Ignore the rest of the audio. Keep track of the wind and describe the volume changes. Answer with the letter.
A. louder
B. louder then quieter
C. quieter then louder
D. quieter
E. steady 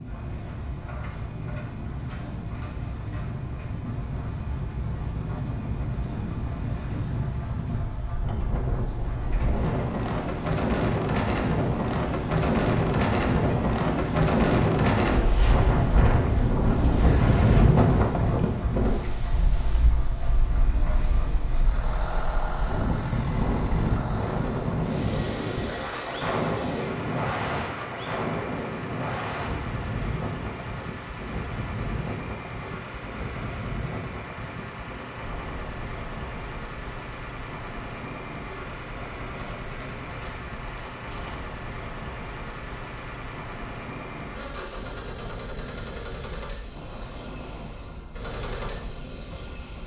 B.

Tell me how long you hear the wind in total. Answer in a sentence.
The wind can be heard for 50 seconds in total.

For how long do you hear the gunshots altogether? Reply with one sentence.
You can hear the gunshots for 2 seconds altogether.